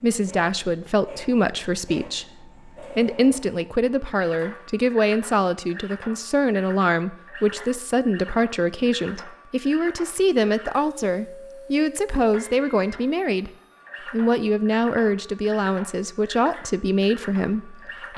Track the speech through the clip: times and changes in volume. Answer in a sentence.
You can hear the speech from 0.0 to 18.1 s, at a steady volume.